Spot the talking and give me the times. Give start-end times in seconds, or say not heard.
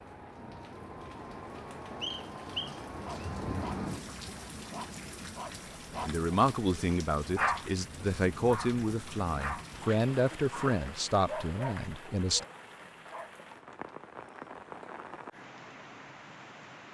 6.0-12.4.